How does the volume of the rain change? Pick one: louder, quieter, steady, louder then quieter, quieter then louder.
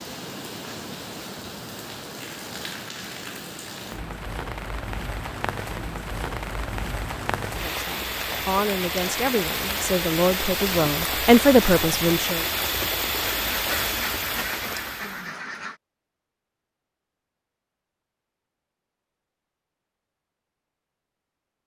louder.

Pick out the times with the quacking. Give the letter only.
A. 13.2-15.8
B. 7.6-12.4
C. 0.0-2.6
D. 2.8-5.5
A.